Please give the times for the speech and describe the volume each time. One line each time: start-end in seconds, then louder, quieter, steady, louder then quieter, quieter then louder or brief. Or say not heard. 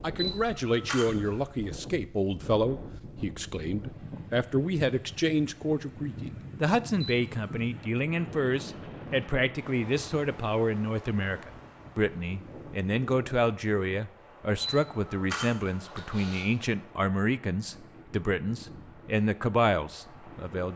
0.0-20.7 steady.